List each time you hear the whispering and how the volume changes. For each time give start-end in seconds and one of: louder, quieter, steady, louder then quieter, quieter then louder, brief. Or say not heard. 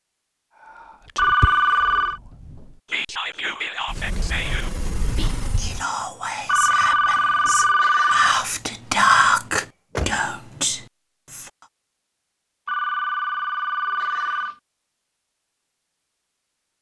0.6-11.7 louder.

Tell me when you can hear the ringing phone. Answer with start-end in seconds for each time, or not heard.
1.1-2.2, 6.5-8.4, 12.7-14.6.